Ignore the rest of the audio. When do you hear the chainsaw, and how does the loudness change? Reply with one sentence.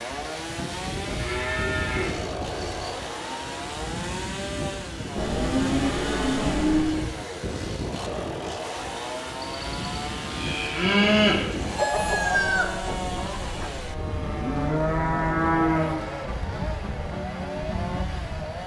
The chainsaw can be heard from 0.0 to 18.6 s, at a steady volume.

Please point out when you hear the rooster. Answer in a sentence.
You can hear the rooster from 11.8 to 13.8 s.